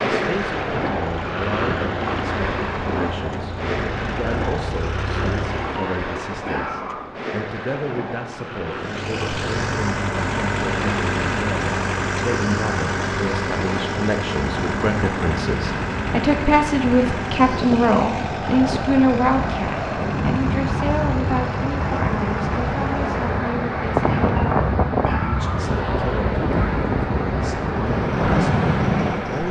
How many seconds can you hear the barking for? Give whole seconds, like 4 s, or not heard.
3 s.